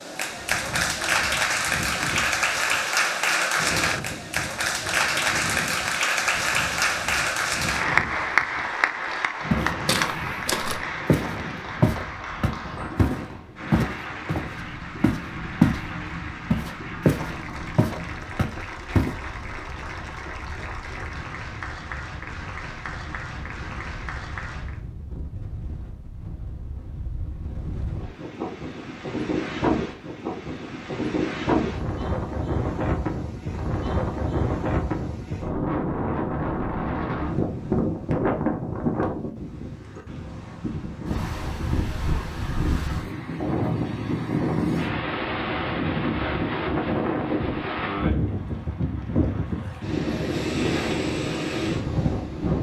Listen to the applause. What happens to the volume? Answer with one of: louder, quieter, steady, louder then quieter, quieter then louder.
quieter.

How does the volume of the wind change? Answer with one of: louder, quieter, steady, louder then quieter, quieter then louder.
louder.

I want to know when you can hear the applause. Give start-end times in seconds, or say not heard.
0.0-24.8.